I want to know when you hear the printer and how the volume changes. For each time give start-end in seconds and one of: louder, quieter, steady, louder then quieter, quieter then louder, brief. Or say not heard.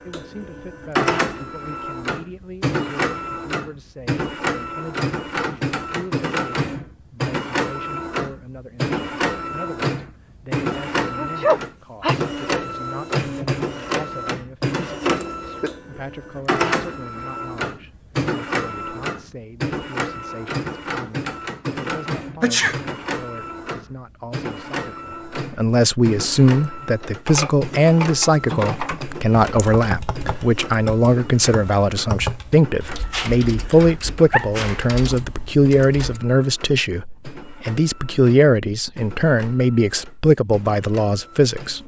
0.0-41.8 quieter.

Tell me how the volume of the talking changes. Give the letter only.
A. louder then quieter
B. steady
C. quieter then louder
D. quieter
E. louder
E.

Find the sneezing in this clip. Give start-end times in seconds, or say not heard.
11.2-12.2, 22.4-22.8, 33.1-34.8.